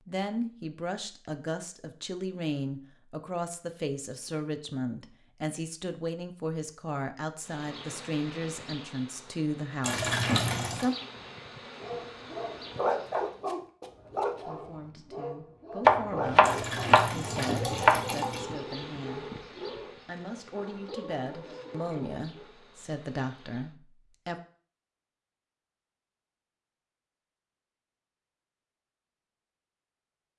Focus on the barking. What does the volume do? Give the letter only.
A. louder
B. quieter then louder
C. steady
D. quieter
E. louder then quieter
D.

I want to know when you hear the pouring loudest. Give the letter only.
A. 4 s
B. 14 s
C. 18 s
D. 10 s
D.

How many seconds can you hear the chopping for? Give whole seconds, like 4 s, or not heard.
2 s.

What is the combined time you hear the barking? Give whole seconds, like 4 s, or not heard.
11 s.